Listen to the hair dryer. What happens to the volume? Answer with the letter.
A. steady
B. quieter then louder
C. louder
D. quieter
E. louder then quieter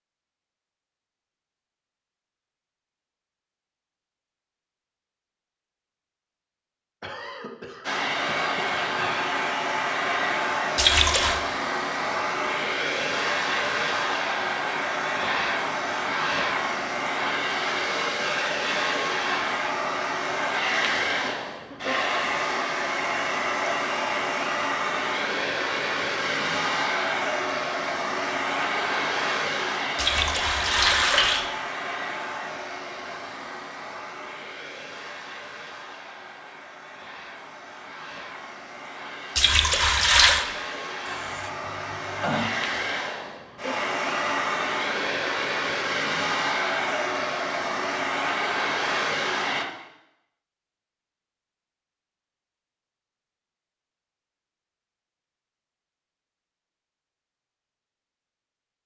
B.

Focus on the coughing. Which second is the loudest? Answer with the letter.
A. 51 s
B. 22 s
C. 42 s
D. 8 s
C.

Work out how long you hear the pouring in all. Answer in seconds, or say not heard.
3 s.